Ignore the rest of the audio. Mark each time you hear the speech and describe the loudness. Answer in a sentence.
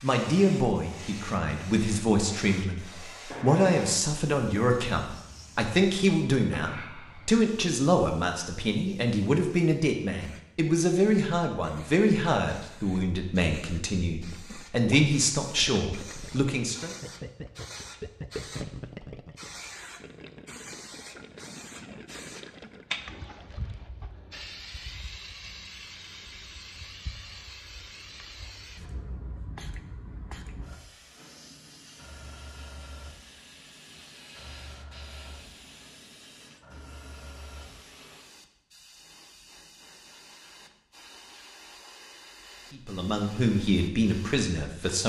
You can hear the speech from 0.0 to 16.9 s, at a steady volume; and briefly from 42.7 to 45.0 s.